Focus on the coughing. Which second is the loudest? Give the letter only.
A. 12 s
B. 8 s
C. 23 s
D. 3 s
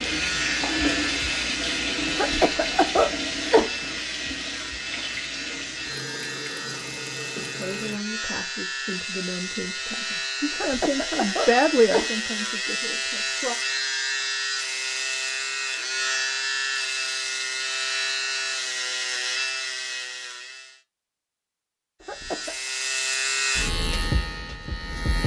D.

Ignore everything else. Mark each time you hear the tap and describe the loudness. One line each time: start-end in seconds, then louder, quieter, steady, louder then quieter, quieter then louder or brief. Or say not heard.
0.0-8.0 quieter.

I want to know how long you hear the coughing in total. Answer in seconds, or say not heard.
4 s.